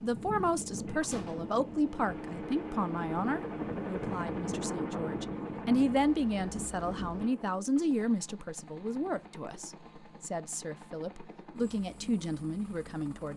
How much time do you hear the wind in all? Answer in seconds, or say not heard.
7 s.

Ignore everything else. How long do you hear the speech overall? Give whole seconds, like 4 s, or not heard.
13 s.